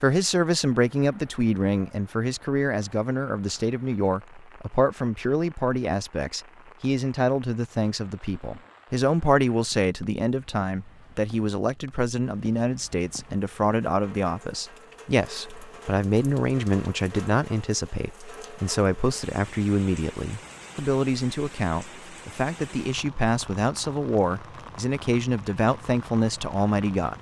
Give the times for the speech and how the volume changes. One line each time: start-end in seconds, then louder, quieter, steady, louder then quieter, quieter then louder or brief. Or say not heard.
0.0-27.1 steady.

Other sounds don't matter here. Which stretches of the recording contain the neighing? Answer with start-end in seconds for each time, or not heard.
not heard.